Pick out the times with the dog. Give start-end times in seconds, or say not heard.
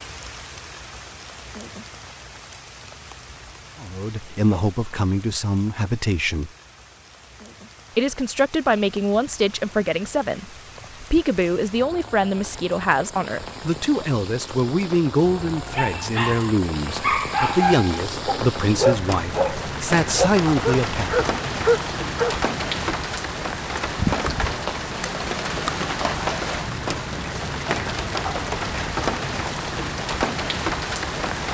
15.8-22.4.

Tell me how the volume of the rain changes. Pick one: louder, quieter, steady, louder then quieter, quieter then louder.
louder.